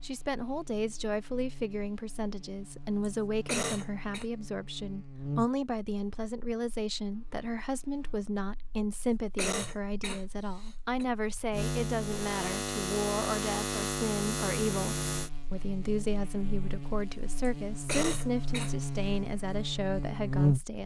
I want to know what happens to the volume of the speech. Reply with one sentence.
The loudness of the speech stays about the same.